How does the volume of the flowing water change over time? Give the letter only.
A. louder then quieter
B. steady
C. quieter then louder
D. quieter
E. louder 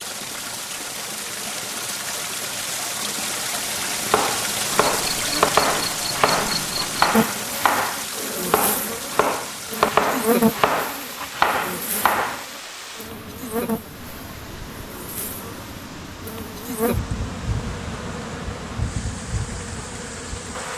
D.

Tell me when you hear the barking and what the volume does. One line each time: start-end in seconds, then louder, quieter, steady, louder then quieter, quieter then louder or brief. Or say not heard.
not heard.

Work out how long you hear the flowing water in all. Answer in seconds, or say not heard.
21 s.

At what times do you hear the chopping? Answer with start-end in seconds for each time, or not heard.
4.1-12.4.